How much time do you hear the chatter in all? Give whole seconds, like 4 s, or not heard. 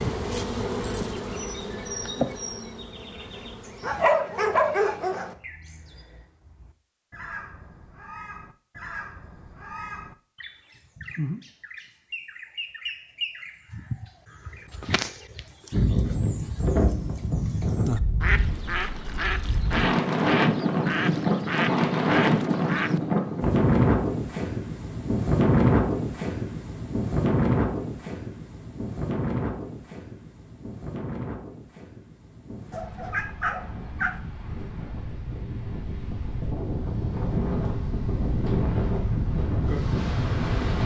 not heard.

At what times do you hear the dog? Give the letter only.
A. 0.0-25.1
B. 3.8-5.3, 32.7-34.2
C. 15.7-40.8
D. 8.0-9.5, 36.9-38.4
B.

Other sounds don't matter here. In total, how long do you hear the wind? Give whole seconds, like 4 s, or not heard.
25 s.